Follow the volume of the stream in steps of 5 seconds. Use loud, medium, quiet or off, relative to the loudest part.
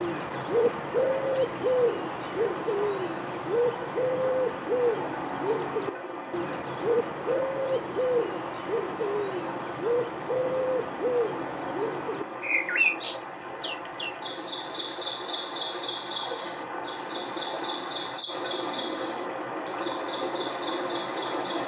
medium, medium, medium, loud, loud.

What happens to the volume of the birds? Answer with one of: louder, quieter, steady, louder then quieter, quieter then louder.
quieter.